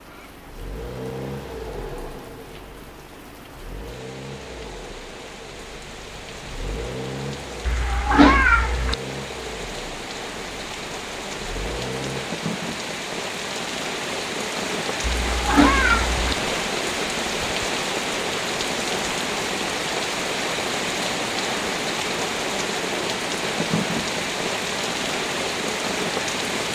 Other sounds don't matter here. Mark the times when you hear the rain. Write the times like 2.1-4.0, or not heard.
0.0-26.7.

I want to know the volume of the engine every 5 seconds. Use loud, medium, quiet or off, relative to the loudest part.
loud, loud, loud, off, off, off.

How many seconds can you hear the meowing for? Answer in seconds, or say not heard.
3 s.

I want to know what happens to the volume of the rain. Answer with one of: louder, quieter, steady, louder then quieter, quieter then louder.
louder.